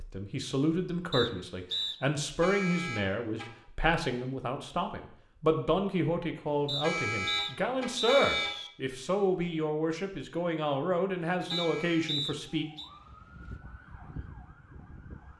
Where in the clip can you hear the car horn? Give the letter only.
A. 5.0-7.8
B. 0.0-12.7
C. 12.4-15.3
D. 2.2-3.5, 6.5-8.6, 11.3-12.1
D.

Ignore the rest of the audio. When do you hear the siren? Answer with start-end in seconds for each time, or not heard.
12.4-15.3.